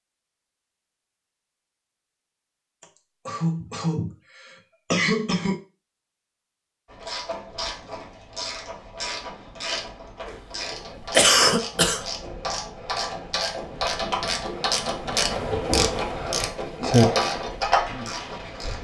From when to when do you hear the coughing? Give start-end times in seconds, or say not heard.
2.8-5.6, 11.1-12.0.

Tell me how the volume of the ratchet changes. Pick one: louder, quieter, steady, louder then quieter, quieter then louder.
louder.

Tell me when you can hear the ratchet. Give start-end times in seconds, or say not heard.
6.8-18.8.